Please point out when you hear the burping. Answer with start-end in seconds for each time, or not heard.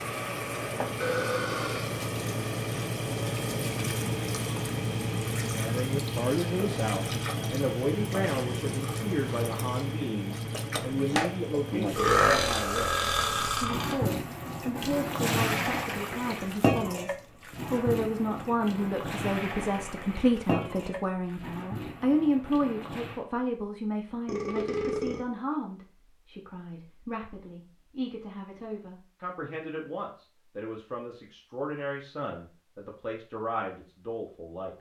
1.0-2.0, 11.9-13.9, 24.2-25.2.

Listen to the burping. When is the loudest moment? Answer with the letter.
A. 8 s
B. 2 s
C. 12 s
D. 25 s
C.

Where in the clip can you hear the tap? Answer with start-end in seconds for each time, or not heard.
0.0-23.2.